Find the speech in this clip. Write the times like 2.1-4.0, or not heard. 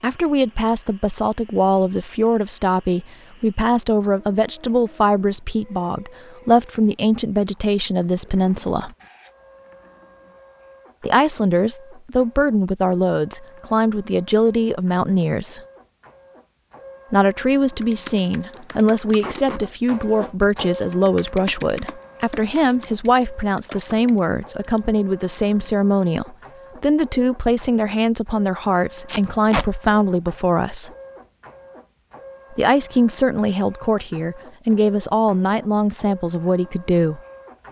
0.0-8.9, 11.0-15.6, 17.1-30.9, 32.5-37.2.